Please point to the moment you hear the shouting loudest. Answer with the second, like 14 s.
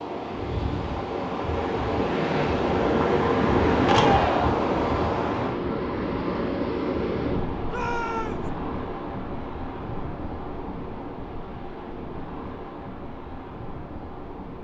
4 s.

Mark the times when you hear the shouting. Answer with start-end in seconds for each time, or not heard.
3.9-4.5, 7.7-8.5.